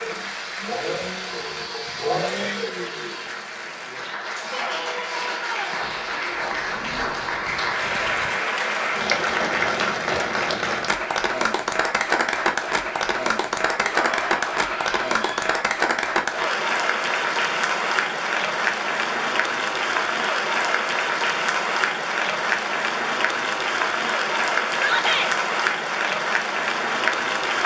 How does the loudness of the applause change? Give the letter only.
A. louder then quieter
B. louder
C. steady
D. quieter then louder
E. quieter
B.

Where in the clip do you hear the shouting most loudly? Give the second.
25 s.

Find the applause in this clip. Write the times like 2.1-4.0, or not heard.
0.0-27.6.